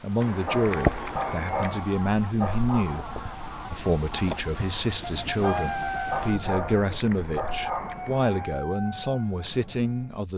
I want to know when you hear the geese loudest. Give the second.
1 s.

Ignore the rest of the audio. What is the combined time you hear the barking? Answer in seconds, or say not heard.
5 s.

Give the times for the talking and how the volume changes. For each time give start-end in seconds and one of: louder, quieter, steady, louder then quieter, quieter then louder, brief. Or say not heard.
0.0-10.3 steady.